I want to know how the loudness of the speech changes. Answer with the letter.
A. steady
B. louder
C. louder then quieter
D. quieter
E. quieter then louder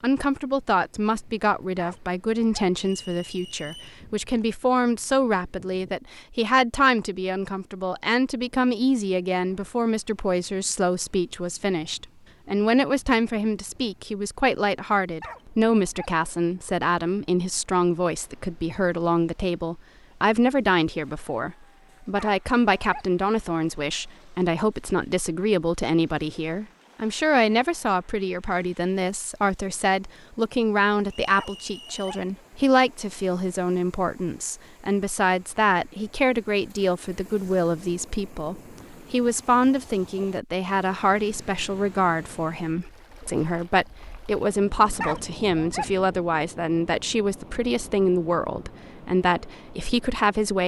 A.